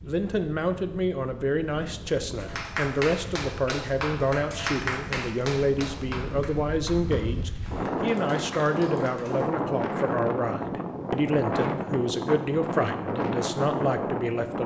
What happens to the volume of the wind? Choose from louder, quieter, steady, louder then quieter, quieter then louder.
louder.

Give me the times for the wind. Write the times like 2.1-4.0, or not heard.
0.0-14.6.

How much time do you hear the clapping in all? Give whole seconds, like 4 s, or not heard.
7 s.